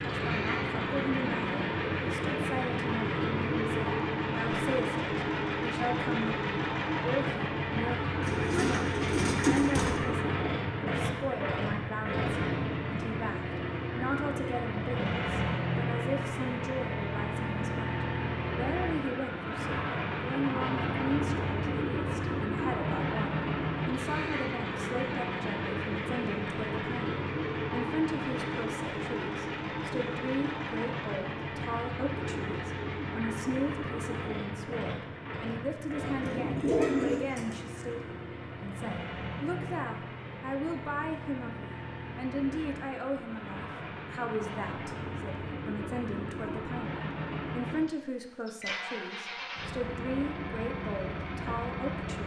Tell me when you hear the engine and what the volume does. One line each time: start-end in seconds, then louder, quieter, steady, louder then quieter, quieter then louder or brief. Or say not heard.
0.0-52.2 quieter.